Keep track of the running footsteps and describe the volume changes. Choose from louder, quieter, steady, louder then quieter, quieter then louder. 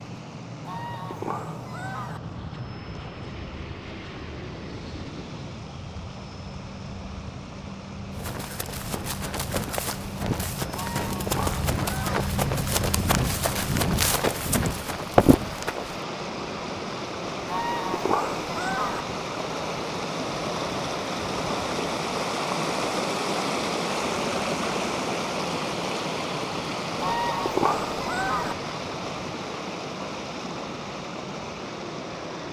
louder.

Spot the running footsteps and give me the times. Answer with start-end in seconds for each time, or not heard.
8.1-16.0.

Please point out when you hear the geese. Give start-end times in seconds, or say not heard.
0.7-2.2, 10.7-12.2, 17.4-19.1, 27.0-28.6.